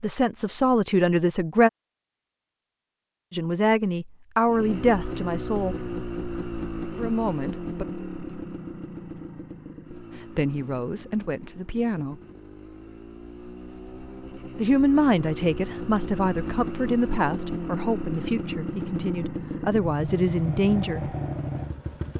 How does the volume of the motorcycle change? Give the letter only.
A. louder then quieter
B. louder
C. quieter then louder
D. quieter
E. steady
C.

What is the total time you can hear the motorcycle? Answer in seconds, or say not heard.
18 s.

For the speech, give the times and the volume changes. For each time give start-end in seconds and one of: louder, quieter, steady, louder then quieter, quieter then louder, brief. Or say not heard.
0.0-1.7 brief
3.3-5.8 brief
7.0-7.8 brief
10.3-12.2 brief
14.6-21.1 quieter then louder.